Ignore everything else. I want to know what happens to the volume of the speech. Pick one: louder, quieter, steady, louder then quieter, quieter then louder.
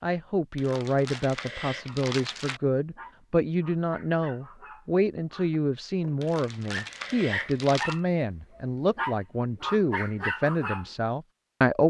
steady.